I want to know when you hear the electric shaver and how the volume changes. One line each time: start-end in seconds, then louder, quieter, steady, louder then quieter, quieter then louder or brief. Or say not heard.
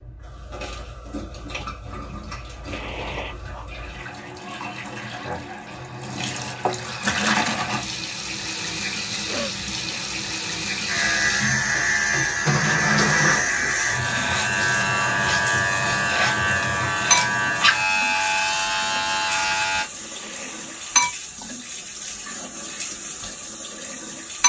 10.8-19.9 steady.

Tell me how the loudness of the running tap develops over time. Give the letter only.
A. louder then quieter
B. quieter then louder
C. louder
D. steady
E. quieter
C.